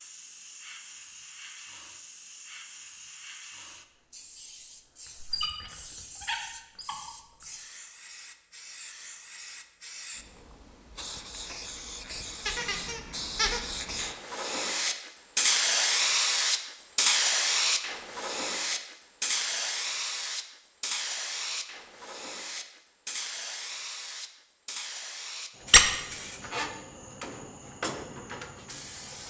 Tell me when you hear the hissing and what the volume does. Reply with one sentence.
You can hear the hissing from 0.0 to 29.2 s, getting louder then quieter.